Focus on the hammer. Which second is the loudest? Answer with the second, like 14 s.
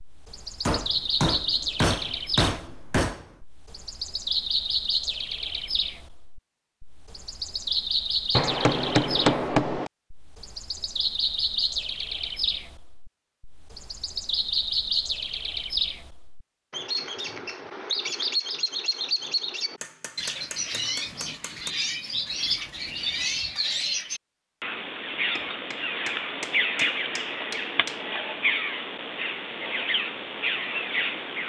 9 s.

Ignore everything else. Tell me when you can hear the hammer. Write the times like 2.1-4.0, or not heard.
0.7-3.2, 8.3-9.9, 19.8-21.7, 25.4-27.9.